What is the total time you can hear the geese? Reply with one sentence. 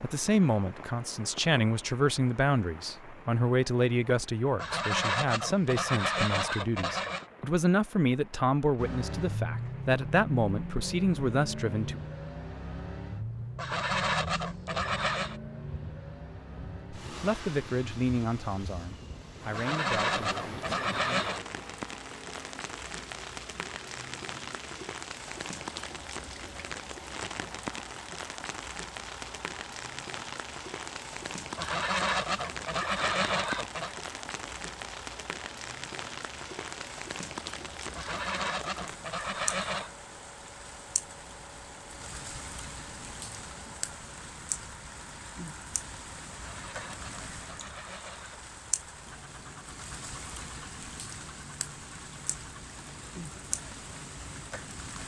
You can hear the geese for 13 seconds altogether.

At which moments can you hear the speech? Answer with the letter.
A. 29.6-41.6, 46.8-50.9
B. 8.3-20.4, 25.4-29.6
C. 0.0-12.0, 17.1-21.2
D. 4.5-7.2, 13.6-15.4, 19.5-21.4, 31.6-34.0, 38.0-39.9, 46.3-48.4
C.